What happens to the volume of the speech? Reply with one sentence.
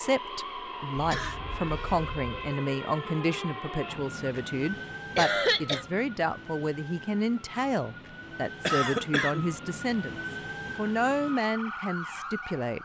The volume of the speech stays about the same.